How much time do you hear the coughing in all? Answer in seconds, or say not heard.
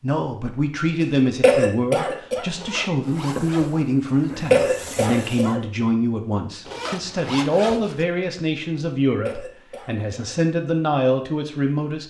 3 s.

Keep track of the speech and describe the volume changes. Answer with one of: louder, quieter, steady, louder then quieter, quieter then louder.
steady.